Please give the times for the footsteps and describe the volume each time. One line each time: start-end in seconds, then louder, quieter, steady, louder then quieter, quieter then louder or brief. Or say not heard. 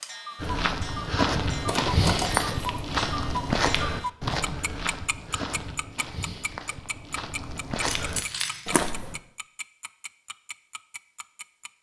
0.4-9.2 quieter then louder.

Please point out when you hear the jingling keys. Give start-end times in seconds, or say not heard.
1.6-3.0, 7.8-8.6.